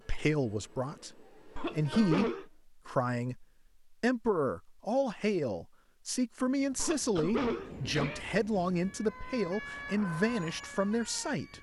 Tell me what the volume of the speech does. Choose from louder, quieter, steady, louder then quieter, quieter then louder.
steady.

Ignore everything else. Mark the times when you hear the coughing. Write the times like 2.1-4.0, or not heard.
1.6-2.5, 6.8-8.2.